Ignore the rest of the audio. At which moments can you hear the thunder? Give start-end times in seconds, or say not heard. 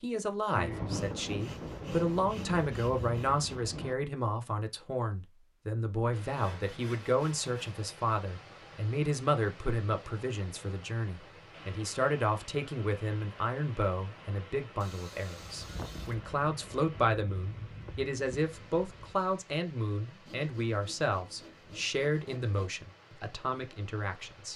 0.6-4.0, 15.4-19.1.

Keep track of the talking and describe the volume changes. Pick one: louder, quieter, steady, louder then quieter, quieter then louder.
steady.